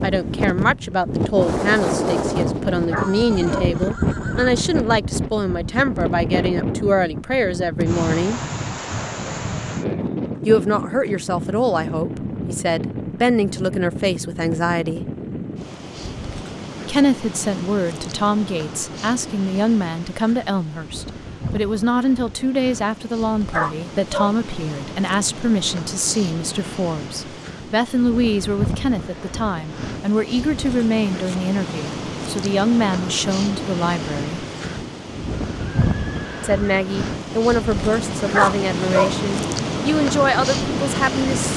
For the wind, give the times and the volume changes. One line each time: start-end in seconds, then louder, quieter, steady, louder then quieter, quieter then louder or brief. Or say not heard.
0.0-41.5 quieter then louder.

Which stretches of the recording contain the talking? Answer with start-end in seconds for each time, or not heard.
0.0-8.4, 10.4-15.1, 16.9-34.5, 36.4-41.5.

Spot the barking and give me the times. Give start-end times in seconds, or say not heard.
2.9-3.7, 23.5-24.4, 38.3-39.1.